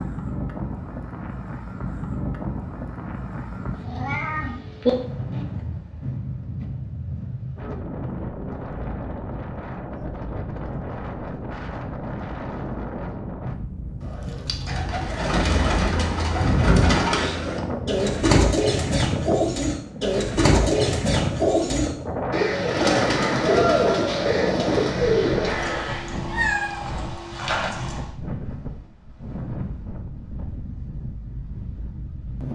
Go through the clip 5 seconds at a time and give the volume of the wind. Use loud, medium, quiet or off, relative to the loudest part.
loud, loud, loud, loud, loud, medium, medium.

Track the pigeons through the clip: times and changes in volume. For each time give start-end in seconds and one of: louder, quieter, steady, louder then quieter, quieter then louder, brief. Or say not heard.
14.7-25.9 steady.